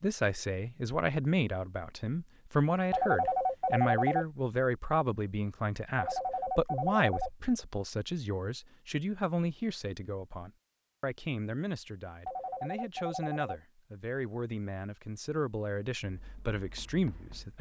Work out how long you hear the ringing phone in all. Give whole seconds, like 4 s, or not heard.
4 s.